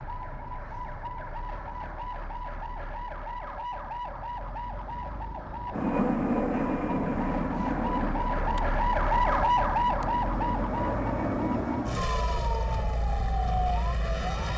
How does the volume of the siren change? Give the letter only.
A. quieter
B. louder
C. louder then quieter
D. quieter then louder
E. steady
C.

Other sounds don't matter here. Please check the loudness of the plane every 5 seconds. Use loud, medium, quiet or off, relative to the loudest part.
off, loud, loud.